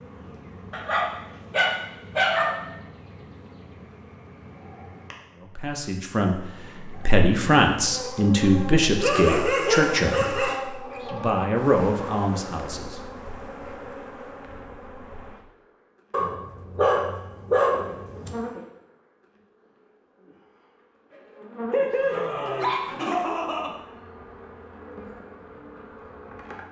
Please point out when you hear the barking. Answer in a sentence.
The barking can be heard from 0.7 to 2.5 s, from 9.0 to 10.6 s, from 16.1 to 18.3 s and from 21.7 to 23.7 s.